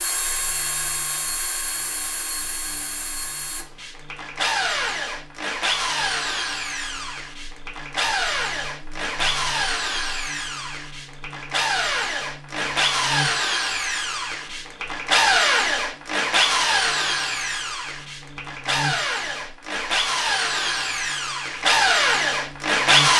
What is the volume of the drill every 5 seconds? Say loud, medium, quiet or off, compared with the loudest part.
medium, medium, medium, loud, loud.